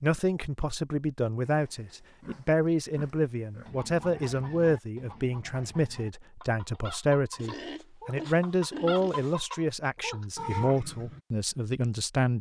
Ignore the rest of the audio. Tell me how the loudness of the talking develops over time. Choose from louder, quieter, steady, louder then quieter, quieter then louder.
steady.